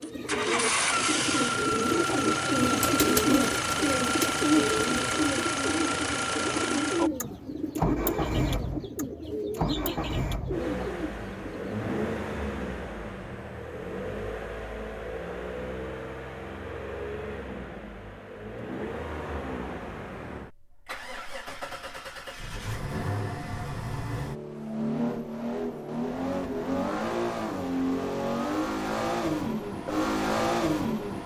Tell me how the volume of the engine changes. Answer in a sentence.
The volume of the engine goes down, then up.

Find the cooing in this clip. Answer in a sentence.
You can hear the cooing from 0.0 to 11.8 s.